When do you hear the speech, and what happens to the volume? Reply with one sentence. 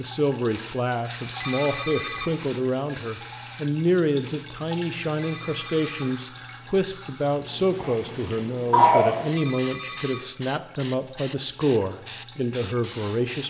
You can hear the speech from 0.0 to 13.4 s, at a steady volume.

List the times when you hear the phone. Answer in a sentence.
The phone can be heard from 1.4 to 2.4 s, from 5.2 to 6.2 s and from 9.3 to 10.3 s.